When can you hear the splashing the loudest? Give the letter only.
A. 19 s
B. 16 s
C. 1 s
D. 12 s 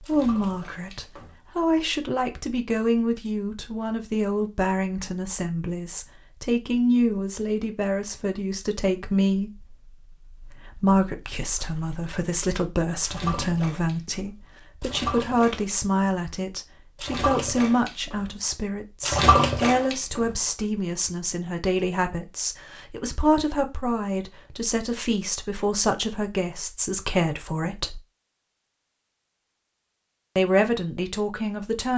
A.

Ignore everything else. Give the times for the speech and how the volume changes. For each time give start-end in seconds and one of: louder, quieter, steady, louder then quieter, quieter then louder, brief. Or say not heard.
0.0-28.0 steady
30.4-31.9 brief.